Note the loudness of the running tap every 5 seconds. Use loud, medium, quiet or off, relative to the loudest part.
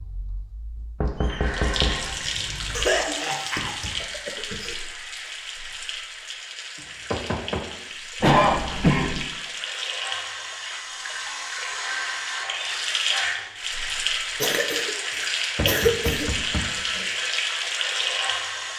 medium, medium, loud, loud.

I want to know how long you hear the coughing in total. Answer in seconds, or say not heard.
4 s.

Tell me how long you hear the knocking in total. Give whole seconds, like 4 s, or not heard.
4 s.